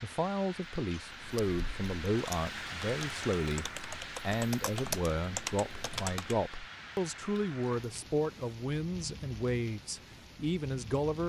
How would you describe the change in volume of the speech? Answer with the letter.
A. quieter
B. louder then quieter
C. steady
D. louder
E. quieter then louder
C.